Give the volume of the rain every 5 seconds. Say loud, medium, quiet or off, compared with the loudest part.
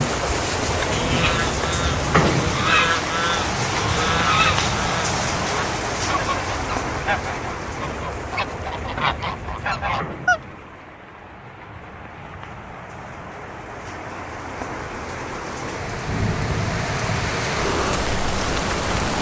loud, medium, quiet, loud.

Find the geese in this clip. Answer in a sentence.
You can hear the geese from 0.7 to 10.4 s.